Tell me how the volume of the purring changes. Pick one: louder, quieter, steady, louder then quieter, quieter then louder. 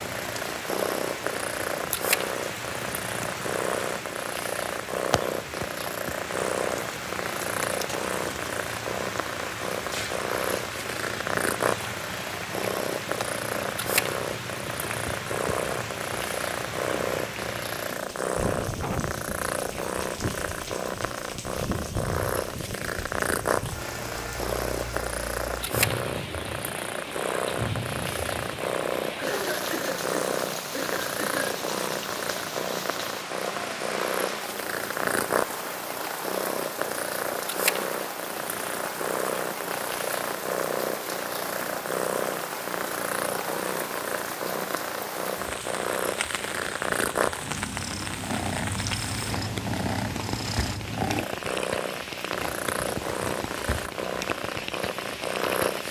steady.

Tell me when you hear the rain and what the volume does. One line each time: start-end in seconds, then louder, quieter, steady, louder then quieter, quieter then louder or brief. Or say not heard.
0.0-55.8 steady.